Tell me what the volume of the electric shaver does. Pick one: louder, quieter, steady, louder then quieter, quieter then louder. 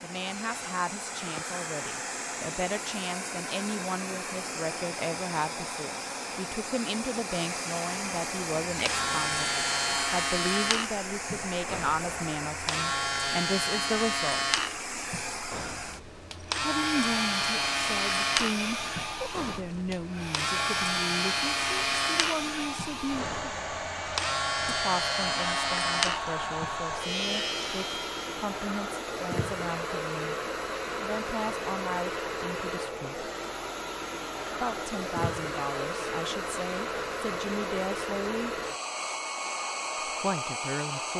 steady.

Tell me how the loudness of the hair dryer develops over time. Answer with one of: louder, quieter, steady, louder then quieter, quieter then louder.
steady.